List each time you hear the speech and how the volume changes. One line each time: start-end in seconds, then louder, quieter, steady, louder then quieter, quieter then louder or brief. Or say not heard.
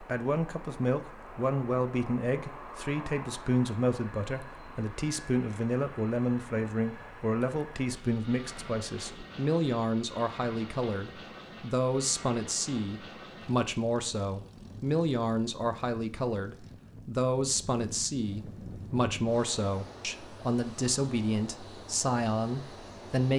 0.0-23.3 steady.